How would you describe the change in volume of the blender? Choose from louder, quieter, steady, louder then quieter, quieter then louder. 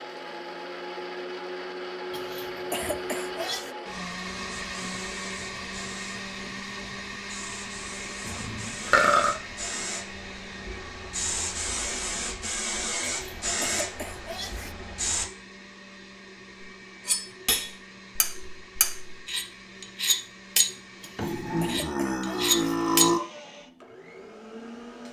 quieter.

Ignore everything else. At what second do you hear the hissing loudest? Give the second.
13 s.